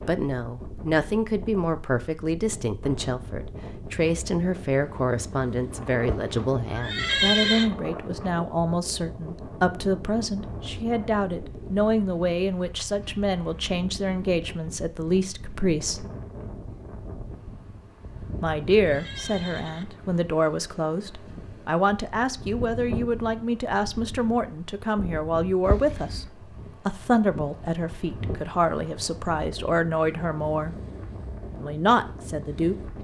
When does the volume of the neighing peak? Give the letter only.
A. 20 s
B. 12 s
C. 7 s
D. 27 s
C.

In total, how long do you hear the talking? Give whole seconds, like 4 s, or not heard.
29 s.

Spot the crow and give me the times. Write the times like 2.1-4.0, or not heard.
not heard.